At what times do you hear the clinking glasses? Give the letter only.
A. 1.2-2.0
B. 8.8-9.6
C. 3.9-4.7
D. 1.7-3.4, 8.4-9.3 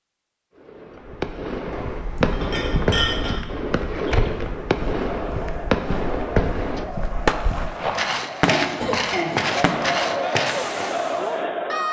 D.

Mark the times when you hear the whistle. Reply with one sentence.
You can't hear the whistle here.